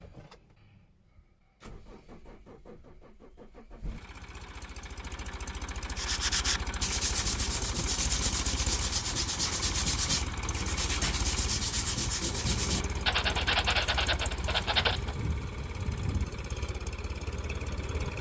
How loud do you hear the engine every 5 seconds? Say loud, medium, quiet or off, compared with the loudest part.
quiet, loud, loud, loud.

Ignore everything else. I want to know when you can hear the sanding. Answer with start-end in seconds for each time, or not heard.
6.0-15.2.